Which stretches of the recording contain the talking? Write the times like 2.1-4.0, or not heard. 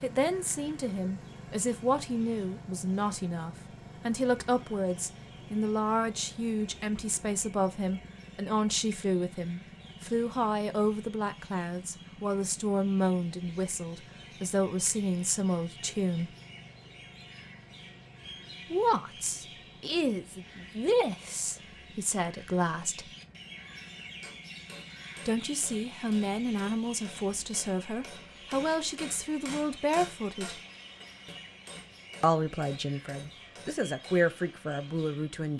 0.0-16.4, 18.7-23.1, 25.2-30.6, 32.2-35.5.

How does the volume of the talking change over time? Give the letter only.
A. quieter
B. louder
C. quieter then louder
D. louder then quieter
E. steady
E.